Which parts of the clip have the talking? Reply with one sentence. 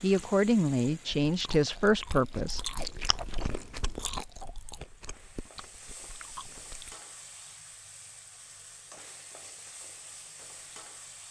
You can hear the talking from 0.0 to 2.8 s.